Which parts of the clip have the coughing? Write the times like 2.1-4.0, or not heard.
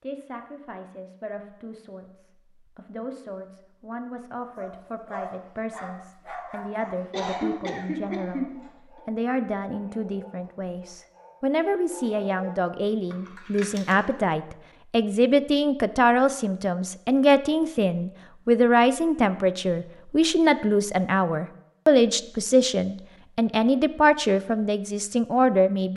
7.1-8.6.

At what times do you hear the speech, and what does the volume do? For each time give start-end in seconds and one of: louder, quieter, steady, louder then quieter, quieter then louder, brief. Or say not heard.
0.0-25.9 louder.